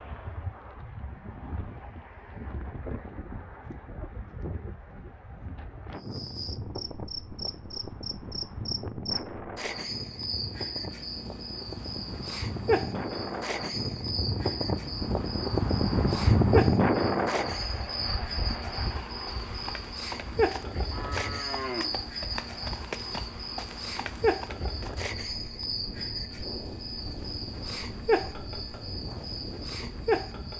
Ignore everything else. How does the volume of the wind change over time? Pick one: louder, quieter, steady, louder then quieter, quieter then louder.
louder then quieter.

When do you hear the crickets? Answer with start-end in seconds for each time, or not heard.
6.0-30.5.